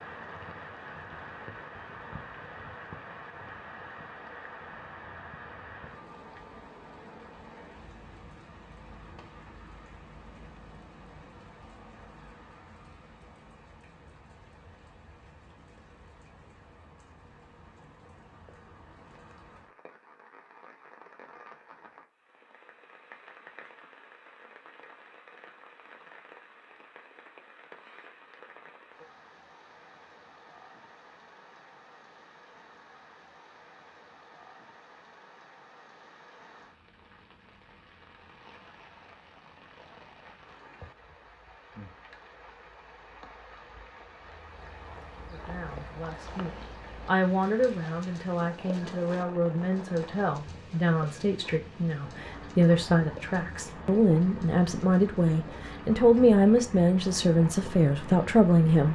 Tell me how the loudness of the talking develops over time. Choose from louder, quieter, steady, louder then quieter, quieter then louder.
louder.